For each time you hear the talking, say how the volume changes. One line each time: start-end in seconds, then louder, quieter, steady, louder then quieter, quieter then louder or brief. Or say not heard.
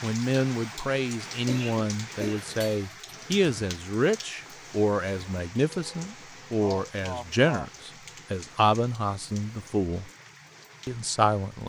0.0-10.1 steady
10.8-11.6 brief.